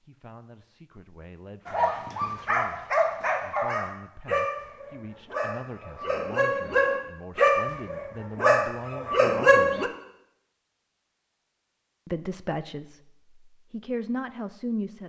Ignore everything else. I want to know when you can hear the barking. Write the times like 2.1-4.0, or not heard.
1.6-9.9.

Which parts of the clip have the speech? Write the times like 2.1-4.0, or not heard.
0.0-9.9, 12.1-15.0.